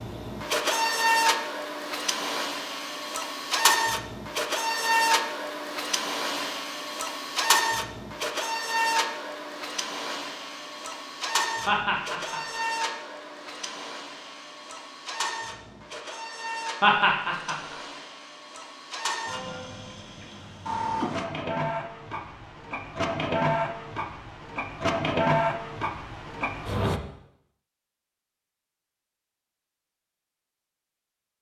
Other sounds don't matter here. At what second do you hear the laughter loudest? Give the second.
17 s.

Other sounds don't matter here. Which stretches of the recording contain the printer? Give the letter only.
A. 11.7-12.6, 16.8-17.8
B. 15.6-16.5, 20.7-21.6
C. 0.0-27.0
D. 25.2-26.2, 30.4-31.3
C.